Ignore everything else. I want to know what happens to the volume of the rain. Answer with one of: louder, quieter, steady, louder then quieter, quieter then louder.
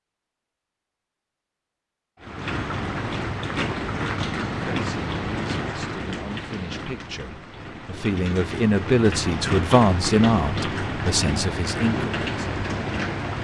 quieter then louder.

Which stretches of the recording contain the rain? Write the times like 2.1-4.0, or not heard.
2.2-13.3.